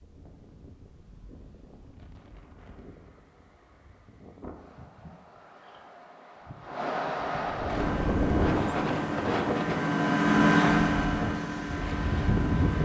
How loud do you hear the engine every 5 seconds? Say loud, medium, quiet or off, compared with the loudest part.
off, medium, loud.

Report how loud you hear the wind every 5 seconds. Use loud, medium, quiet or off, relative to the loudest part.
quiet, loud, loud.